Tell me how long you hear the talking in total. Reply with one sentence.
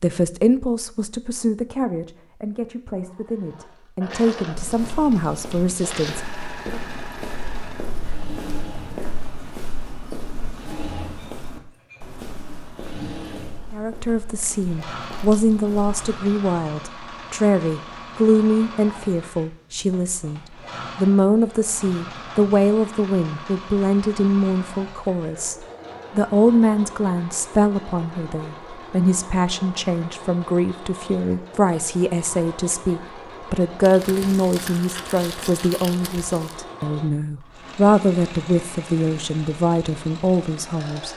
You can hear the talking for 34 seconds altogether.